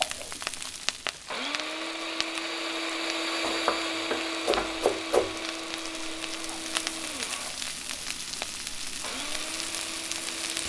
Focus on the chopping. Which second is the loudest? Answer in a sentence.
The volume of the chopping peaks at 5 seconds.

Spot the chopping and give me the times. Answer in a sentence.
The chopping can be heard from 3.4 to 5.5 s.